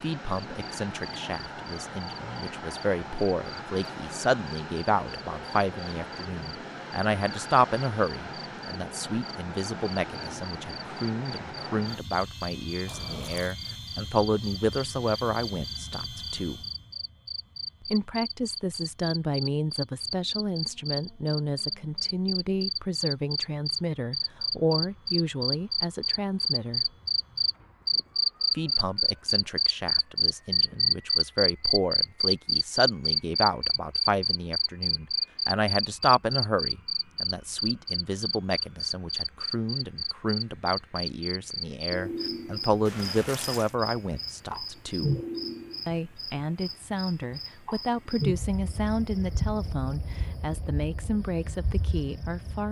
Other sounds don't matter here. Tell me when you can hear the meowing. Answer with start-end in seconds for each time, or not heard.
not heard.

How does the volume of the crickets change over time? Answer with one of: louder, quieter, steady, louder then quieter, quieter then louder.
louder then quieter.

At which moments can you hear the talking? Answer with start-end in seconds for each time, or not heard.
0.0-16.6, 17.9-26.9, 28.6-45.1, 45.9-52.6.